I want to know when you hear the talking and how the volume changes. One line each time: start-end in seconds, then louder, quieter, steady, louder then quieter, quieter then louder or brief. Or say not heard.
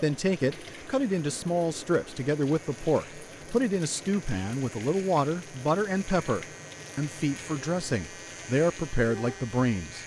0.0-10.0 steady.